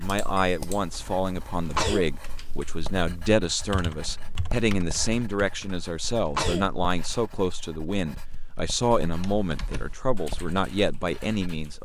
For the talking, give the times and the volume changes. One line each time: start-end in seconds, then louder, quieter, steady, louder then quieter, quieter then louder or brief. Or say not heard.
0.0-11.7 steady.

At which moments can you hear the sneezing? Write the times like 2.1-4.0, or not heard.
1.6-2.0, 6.2-7.2.